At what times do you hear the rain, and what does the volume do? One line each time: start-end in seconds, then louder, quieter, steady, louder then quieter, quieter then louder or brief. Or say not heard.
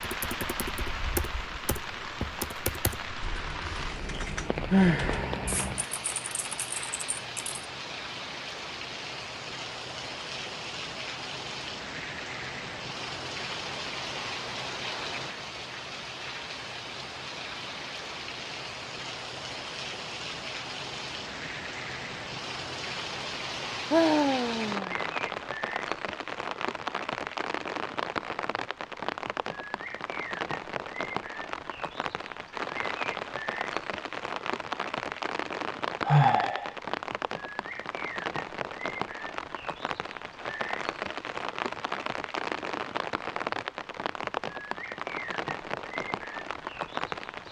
0.0-47.4 steady.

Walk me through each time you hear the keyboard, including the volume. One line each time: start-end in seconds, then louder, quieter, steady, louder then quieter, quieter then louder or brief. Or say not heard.
0.0-7.6 quieter.